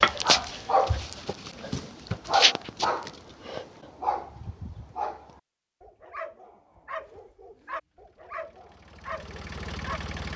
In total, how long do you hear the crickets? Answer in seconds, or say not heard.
not heard.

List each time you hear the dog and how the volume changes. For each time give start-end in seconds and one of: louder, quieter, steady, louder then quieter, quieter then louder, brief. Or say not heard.
0.0-10.2 quieter.